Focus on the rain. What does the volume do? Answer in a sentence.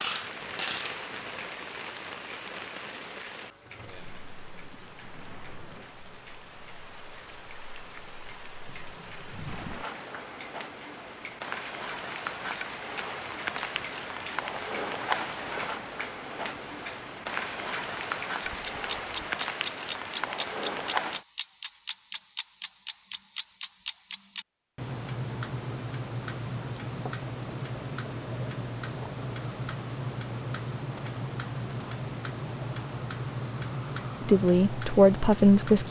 The loudness of the rain goes down, then up.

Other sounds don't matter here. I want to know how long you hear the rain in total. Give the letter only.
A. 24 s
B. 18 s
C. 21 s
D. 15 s
C.